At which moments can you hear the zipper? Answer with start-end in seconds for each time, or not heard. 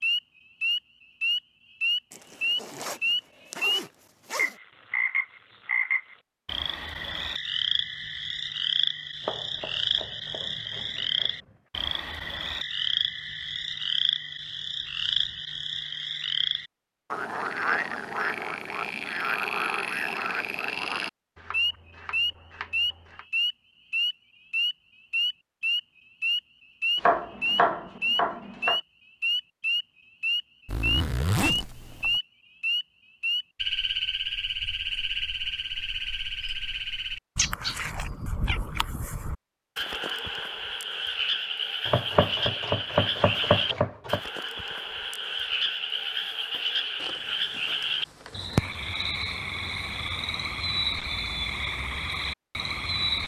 2.1-4.5, 30.6-32.2, 47.0-48.7.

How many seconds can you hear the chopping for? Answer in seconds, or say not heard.
8 s.